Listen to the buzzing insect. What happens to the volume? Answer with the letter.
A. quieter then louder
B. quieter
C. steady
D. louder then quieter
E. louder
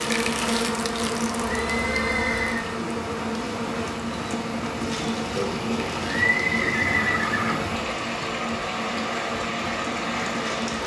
B.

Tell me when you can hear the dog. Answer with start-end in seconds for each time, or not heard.
not heard.